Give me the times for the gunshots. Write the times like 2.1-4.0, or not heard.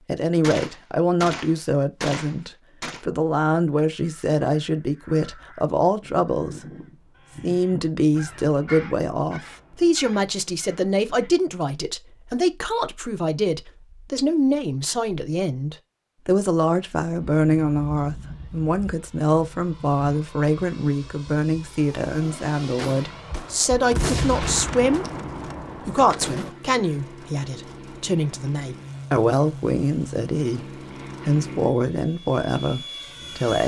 0.4-3.0, 22.8-26.5.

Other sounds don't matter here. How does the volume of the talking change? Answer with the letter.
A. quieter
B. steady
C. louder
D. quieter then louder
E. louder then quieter
B.